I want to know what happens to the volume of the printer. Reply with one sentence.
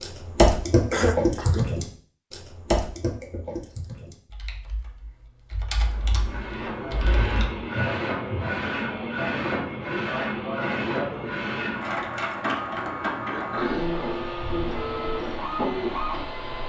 The volume of the printer stays about the same.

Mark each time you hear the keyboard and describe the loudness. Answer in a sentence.
The keyboard can be heard from 0.0 to 7.5 s, getting quieter then louder.